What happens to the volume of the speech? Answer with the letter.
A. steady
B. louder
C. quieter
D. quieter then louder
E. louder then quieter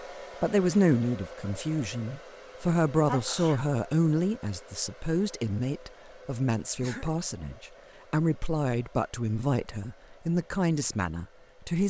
A.